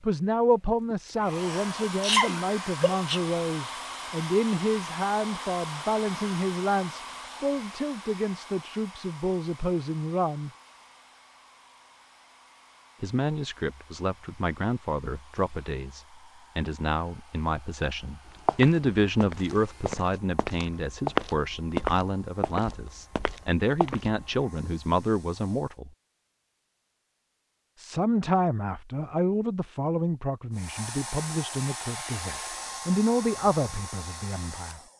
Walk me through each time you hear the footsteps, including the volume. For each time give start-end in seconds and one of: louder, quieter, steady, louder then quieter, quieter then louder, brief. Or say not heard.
18.2-24.4 louder then quieter.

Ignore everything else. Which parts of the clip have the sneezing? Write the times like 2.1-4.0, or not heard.
0.9-3.2.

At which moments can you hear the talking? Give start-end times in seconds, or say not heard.
0.0-10.5, 13.0-25.9, 27.8-34.8.